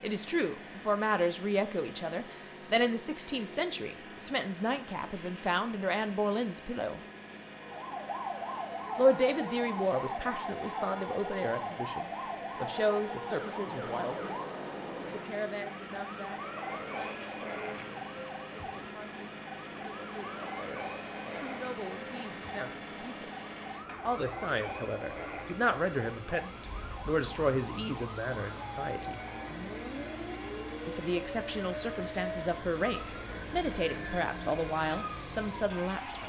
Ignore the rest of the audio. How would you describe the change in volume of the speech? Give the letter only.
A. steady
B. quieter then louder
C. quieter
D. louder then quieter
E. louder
B.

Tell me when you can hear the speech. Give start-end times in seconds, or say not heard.
0.0-7.0, 8.9-23.3, 24.1-29.2, 30.9-36.2.